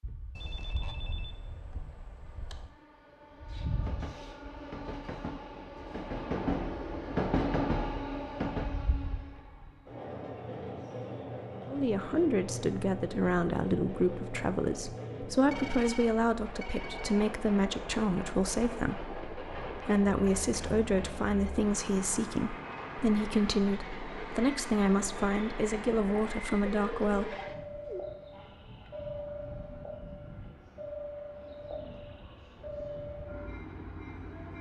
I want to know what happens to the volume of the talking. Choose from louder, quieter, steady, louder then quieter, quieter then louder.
steady.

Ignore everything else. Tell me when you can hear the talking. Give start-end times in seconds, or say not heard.
11.7-27.4.